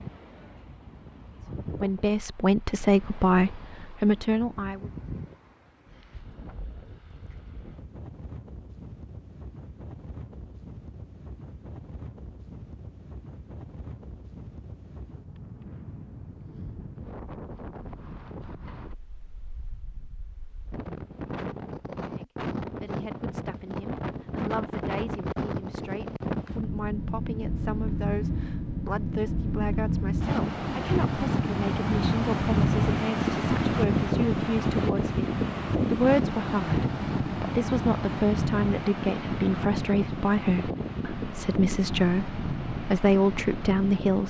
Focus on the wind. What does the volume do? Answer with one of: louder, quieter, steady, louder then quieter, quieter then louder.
louder.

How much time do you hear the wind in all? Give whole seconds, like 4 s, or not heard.
44 s.